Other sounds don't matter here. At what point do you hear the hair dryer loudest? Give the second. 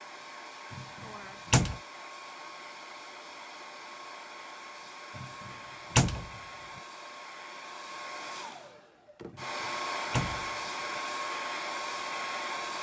10 s.